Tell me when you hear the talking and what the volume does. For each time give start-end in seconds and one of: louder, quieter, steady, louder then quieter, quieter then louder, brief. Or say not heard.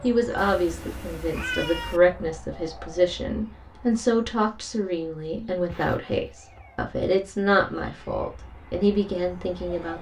0.0-9.9 steady.